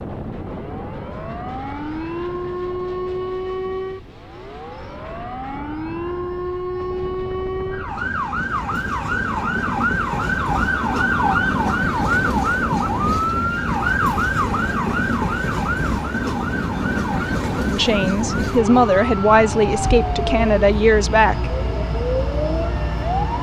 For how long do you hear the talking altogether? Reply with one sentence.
The talking can be heard for 4 seconds in total.